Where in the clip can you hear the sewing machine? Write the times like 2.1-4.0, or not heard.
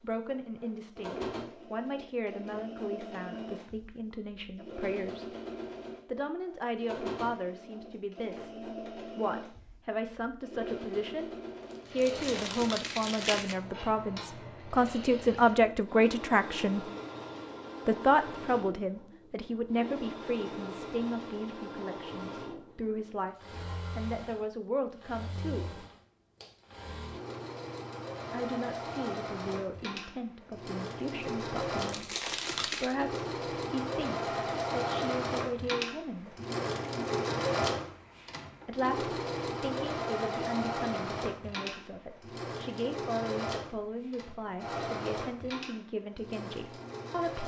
0.0-47.4.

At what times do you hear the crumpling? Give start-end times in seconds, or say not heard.
11.6-13.6, 31.8-33.0.